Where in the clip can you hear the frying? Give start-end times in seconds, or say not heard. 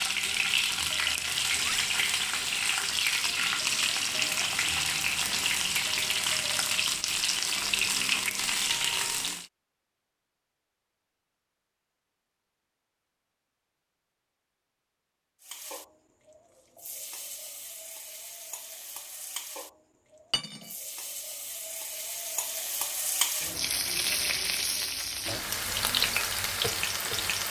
0.0-9.4, 15.4-27.4.